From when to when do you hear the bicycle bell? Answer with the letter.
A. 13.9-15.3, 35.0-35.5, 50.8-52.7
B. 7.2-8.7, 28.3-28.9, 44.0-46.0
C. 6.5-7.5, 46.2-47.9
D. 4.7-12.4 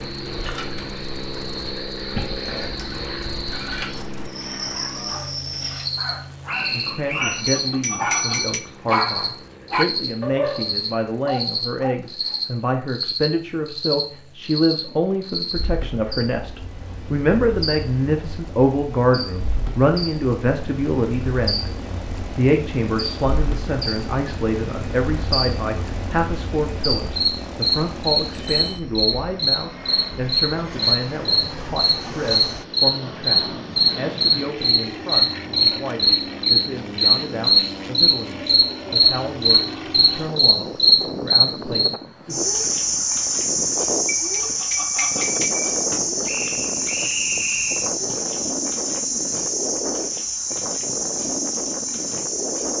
B.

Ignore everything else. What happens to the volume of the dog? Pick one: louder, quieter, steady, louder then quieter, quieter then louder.
louder then quieter.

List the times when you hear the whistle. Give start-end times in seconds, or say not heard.
6.5-7.5, 46.2-47.9.